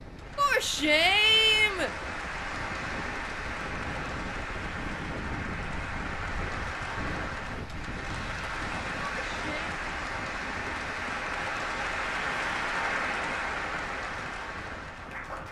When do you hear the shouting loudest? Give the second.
1 s.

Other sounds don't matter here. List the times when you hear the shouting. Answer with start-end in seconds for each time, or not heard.
0.3-1.9, 8.9-9.7.